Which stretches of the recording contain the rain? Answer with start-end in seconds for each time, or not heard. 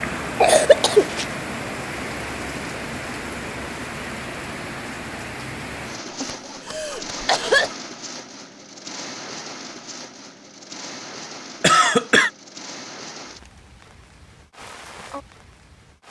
0.0-16.0.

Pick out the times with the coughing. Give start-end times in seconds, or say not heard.
0.0-1.2, 6.2-7.7, 11.6-12.3.